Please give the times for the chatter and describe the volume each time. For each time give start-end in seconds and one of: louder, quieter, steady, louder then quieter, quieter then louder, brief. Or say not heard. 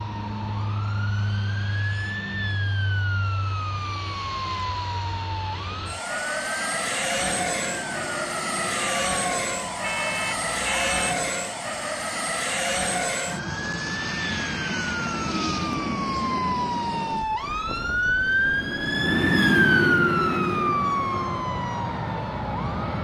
not heard.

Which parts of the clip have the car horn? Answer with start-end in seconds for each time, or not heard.
9.8-11.2.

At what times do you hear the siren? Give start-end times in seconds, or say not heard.
0.0-22.9.